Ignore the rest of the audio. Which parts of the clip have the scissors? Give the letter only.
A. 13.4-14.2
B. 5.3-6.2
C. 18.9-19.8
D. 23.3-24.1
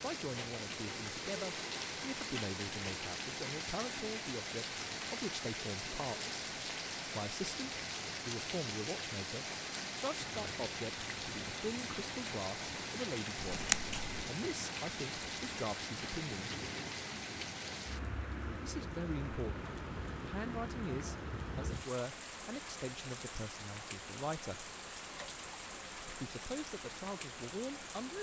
A.